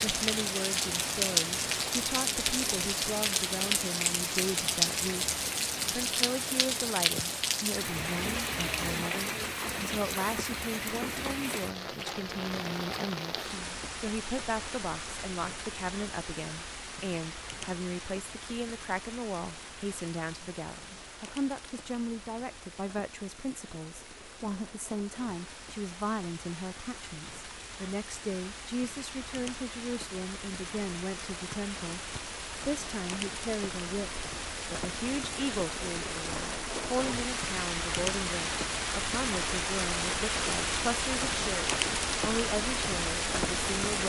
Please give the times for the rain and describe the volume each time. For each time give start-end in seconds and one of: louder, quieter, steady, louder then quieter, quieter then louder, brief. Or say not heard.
0.0-44.0 quieter then louder.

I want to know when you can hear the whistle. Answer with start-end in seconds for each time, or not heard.
31.5-32.2.